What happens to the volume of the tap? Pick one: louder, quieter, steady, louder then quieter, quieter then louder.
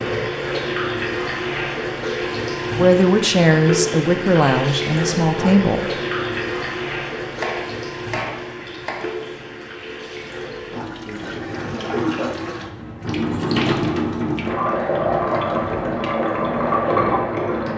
quieter then louder.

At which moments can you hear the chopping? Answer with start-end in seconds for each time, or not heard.
7.2-9.2.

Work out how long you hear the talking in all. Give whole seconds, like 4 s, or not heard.
3 s.